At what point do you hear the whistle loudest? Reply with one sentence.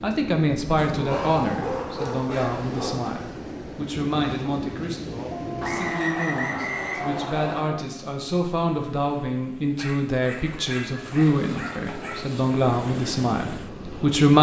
The volume of the whistle peaks at 6 seconds.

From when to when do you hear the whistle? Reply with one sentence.
The whistle can be heard from 5.6 to 7.6 s.